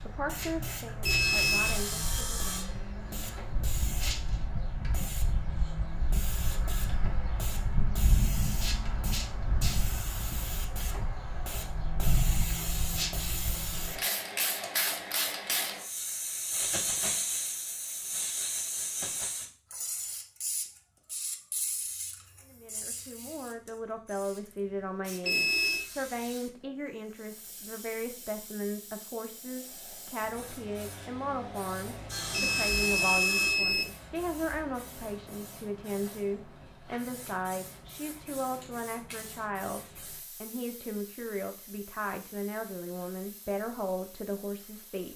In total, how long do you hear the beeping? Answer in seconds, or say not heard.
3 s.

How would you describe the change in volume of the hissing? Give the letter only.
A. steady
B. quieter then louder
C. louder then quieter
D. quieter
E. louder
D.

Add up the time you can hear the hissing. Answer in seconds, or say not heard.
45 s.